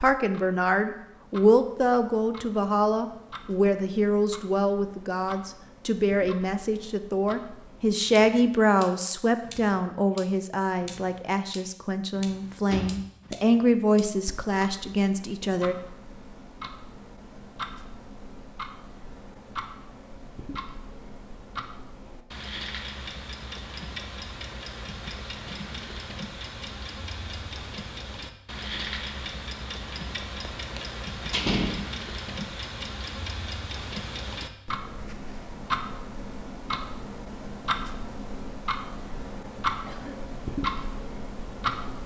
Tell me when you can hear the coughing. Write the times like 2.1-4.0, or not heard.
39.9-40.3.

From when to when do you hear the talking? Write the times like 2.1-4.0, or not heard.
0.0-15.8.